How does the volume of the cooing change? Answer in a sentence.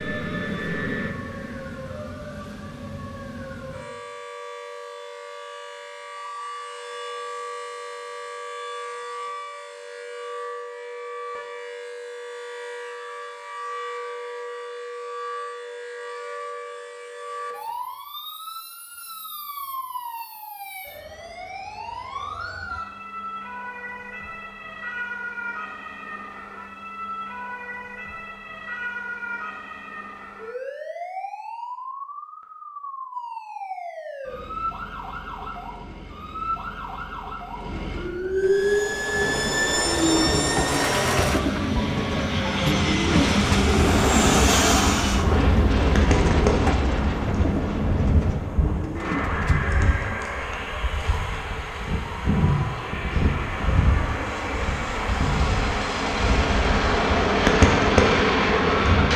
The loudness of the cooing goes up, then down.